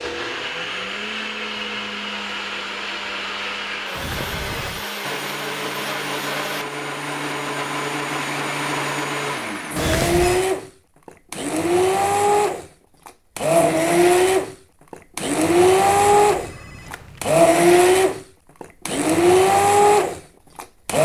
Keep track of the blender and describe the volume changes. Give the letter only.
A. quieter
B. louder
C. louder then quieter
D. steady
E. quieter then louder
B.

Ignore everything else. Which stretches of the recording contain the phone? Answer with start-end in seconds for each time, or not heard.
3.9-4.8, 9.8-10.4, 15.9-17.4.